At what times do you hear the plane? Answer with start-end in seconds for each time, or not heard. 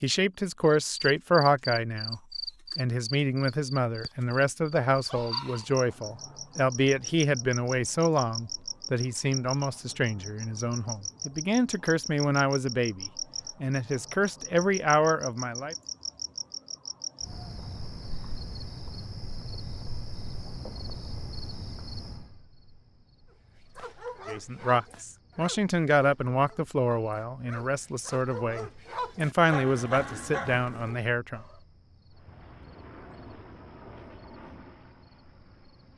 32.1-35.9.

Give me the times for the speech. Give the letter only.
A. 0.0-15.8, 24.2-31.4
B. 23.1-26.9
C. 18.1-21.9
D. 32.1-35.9
A.